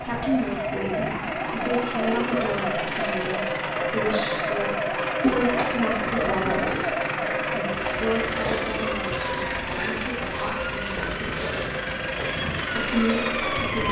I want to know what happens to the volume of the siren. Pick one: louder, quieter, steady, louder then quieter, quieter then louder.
steady.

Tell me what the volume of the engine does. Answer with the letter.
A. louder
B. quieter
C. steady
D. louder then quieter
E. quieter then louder
C.